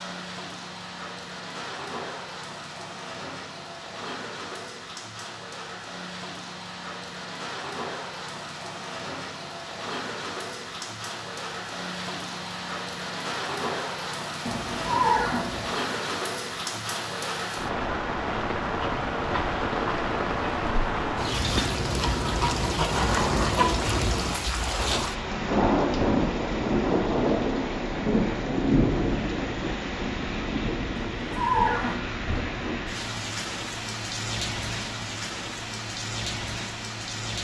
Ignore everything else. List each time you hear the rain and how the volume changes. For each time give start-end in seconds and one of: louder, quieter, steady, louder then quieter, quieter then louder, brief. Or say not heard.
0.0-37.3 louder then quieter.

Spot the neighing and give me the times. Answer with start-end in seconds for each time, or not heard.
14.4-15.8, 30.9-32.8.